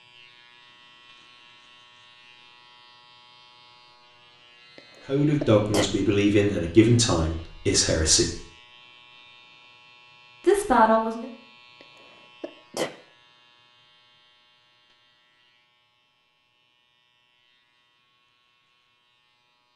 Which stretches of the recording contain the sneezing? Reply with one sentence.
The sneezing can be heard from 5.4 to 5.9 s and from 11.8 to 12.9 s.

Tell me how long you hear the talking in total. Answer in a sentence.
You can hear the talking for 4 seconds altogether.